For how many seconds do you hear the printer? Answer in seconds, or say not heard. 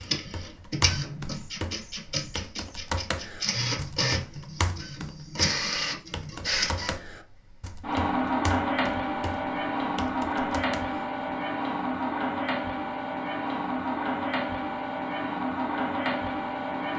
17 s.